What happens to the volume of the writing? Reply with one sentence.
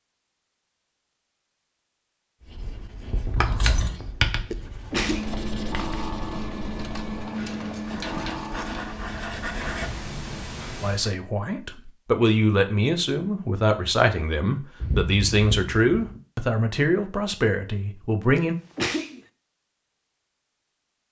The volume of the writing goes down, then up.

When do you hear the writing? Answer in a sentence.
You can hear the writing from 2.4 to 11.1 s.